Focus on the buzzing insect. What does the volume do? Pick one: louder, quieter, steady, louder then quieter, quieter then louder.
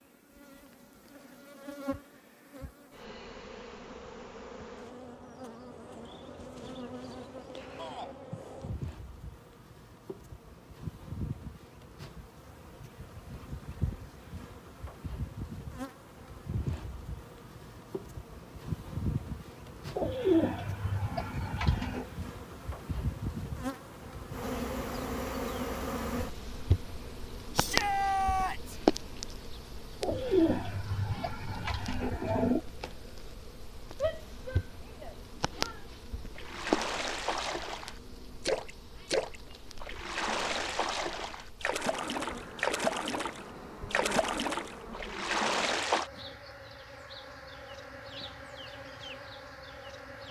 louder then quieter.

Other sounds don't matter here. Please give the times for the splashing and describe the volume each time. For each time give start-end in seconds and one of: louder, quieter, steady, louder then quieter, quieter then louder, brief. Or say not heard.
36.4-46.1 steady.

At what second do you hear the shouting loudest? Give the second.
28 s.